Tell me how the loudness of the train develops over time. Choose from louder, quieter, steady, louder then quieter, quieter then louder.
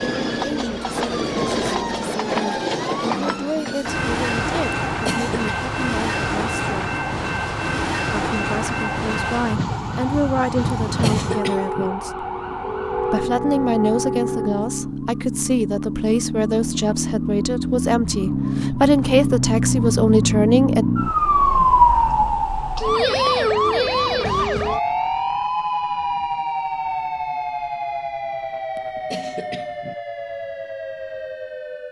steady.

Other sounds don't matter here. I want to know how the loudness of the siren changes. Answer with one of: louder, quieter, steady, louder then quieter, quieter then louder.
louder then quieter.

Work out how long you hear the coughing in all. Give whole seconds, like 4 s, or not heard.
3 s.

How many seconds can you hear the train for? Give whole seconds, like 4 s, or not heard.
15 s.